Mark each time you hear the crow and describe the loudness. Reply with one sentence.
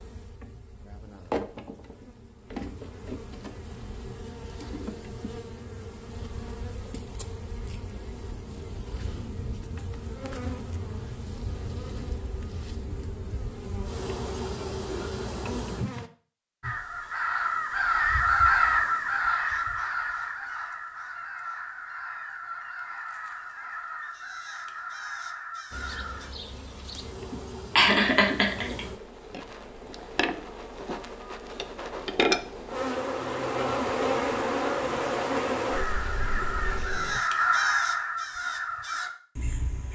The crow can be heard from 16.6 to 26.3 s, getting quieter; and from 35.7 to 39.8 s, getting louder then quieter.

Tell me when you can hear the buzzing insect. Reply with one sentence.
The buzzing insect can be heard from 0.0 to 16.1 s and from 25.7 to 37.2 s.